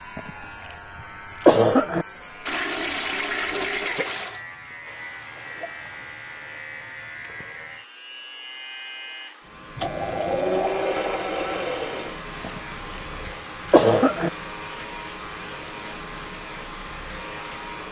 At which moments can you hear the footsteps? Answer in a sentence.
You can't hear the footsteps here.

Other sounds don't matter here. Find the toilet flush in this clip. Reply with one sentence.
You can hear the toilet flush from 2.5 to 4.4 s and from 9.8 to 12.2 s.